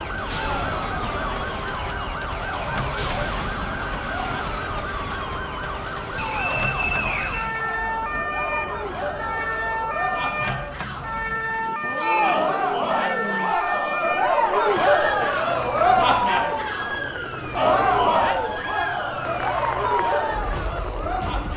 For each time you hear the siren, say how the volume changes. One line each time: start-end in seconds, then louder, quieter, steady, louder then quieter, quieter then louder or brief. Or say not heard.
0.0-21.5 steady.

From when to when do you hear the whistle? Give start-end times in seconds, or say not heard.
6.2-7.6.